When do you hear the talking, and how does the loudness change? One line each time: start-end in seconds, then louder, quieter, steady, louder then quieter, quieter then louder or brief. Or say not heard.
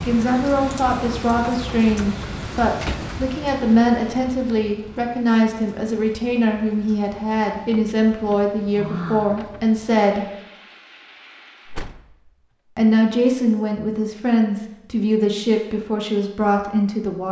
0.1-10.2 steady
12.8-17.2 steady.